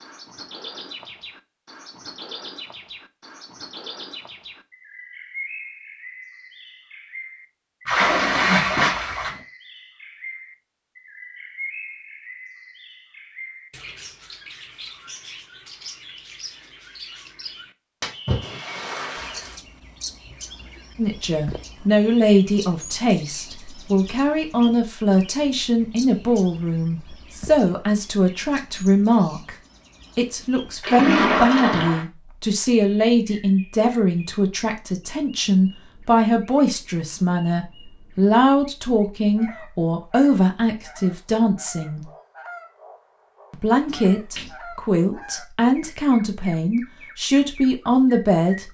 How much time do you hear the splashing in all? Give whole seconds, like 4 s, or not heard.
5 s.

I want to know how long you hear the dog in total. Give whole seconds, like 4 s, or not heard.
not heard.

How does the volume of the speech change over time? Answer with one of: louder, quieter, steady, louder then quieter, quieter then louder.
steady.